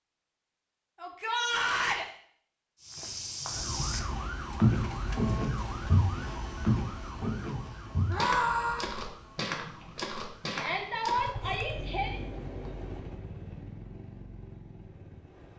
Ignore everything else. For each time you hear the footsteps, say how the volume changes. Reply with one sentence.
You can hear the footsteps from 2.8 to 11.3 s, getting quieter.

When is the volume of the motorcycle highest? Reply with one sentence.
The loudest moment of the motorcycle is at 12 seconds.